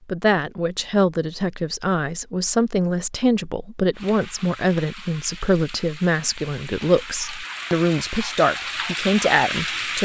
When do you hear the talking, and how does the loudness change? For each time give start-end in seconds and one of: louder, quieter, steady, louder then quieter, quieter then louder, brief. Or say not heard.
0.1-10.0 steady.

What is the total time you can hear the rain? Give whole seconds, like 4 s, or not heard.
6 s.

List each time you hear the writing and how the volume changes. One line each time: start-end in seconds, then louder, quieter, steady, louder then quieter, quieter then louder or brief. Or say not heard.
not heard.